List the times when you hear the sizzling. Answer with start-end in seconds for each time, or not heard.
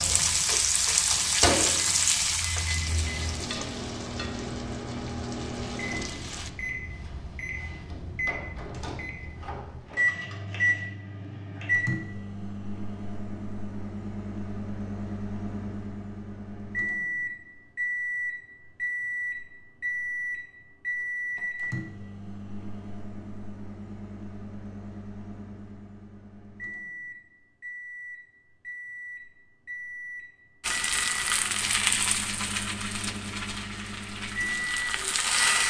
0.0-6.5, 30.6-35.6.